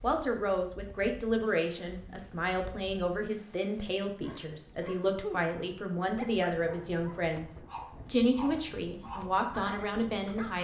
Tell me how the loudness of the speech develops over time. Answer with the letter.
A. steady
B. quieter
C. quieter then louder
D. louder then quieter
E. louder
A.